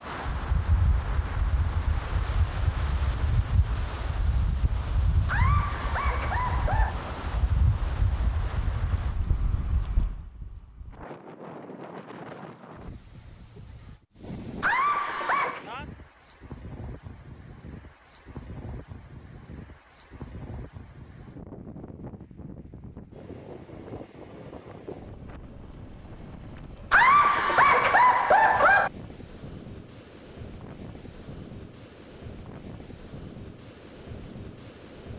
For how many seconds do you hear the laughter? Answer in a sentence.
You can hear the laughter for 5 seconds altogether.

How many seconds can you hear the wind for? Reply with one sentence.
You can hear the wind for 35 seconds altogether.